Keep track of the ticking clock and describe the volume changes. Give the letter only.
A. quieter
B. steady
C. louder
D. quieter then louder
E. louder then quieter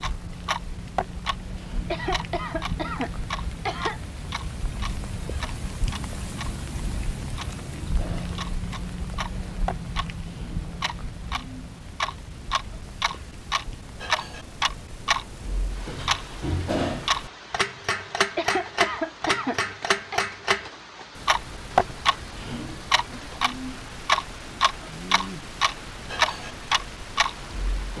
C.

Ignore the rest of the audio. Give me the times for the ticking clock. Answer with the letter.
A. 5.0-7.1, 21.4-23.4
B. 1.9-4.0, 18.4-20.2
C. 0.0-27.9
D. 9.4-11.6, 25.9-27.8
C.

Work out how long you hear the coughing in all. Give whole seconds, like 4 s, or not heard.
4 s.